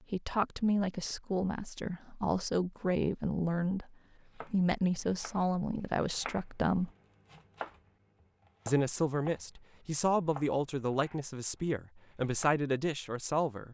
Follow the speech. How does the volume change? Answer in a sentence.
The loudness of the speech stays about the same.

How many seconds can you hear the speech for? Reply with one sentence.
You can hear the speech for 12 seconds altogether.